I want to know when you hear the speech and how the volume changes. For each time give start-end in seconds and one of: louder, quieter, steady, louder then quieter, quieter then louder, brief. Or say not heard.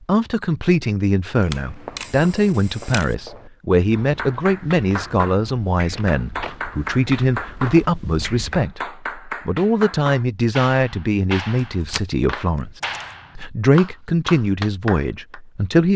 0.1-15.9 steady.